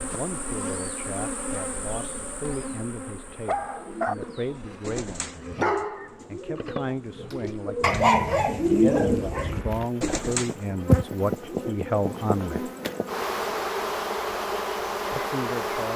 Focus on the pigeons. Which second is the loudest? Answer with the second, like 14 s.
9 s.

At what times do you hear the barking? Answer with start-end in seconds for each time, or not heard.
3.4-9.7.